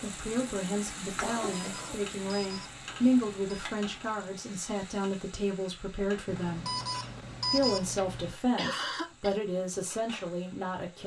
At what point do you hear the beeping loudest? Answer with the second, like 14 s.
8 s.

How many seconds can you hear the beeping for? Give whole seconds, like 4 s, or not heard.
4 s.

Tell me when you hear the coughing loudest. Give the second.
9 s.